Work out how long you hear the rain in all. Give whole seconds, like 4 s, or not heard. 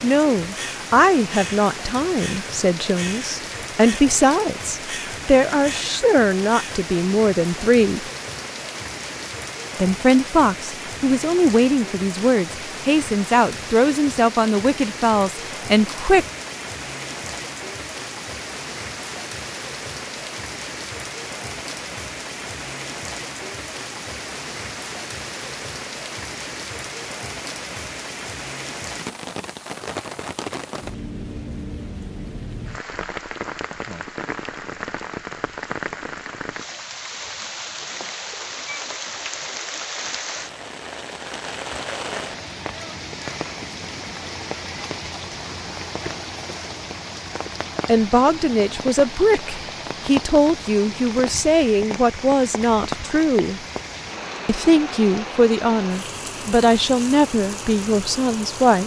59 s.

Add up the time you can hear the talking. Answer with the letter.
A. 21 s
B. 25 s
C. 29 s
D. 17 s
B.